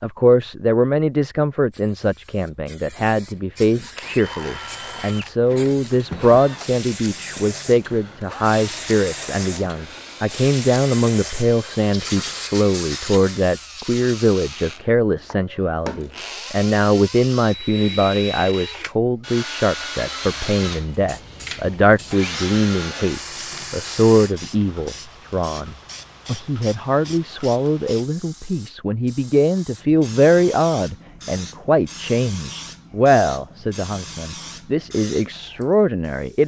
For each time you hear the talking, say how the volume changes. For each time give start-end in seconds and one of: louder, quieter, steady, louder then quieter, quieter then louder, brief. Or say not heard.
0.0-36.4 steady.